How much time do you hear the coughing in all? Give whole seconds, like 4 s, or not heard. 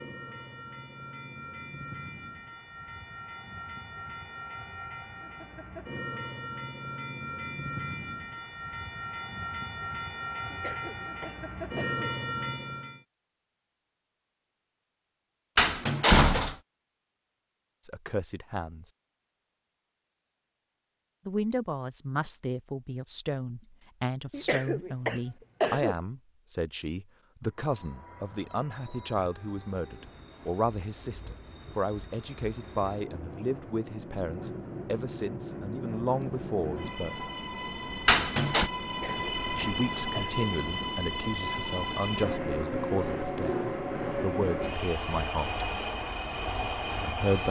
5 s.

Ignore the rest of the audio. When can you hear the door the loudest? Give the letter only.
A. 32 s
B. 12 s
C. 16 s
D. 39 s
C.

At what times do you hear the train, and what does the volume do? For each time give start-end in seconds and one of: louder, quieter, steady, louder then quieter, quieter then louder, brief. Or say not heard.
0.0-13.0 louder
27.4-47.4 louder.